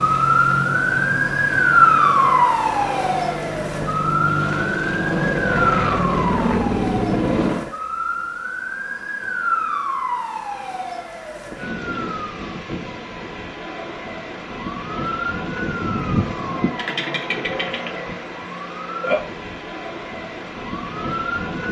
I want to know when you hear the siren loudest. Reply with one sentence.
The volume of the siren peaks at 2 seconds.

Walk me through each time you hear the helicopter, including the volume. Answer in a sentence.
The helicopter can be heard from 0.0 to 7.7 s, getting louder.